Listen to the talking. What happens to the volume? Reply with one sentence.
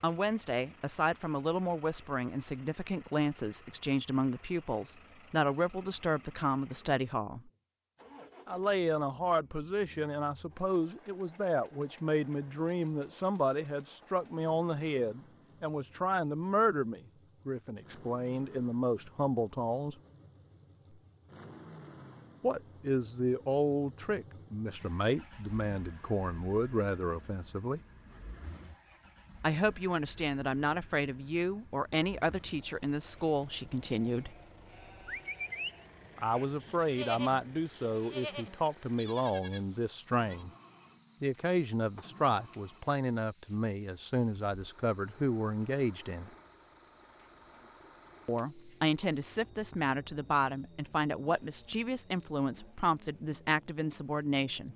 The loudness of the talking stays about the same.